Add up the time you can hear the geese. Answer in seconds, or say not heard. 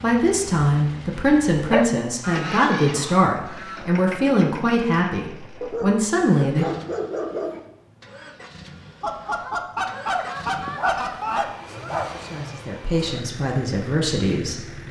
4 s.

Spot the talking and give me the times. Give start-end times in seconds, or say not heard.
0.0-6.7, 11.8-14.8.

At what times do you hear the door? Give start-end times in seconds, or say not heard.
not heard.